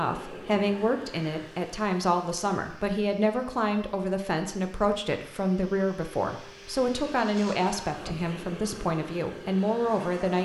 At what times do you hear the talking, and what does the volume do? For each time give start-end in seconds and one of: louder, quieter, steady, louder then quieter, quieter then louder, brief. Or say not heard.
0.0-10.3 steady.